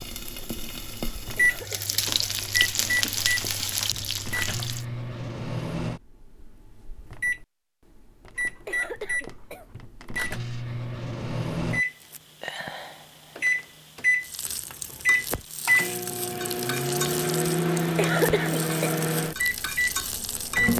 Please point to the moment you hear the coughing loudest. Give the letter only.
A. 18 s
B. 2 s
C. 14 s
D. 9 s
A.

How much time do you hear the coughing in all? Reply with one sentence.
You can hear the coughing for 4 seconds altogether.